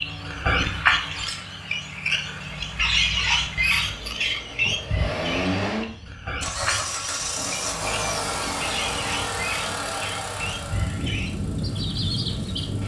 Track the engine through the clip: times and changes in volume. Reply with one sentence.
You can hear the engine from 0.0 to 12.8 s, getting louder.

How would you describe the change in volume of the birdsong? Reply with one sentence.
The loudness of the birdsong goes down.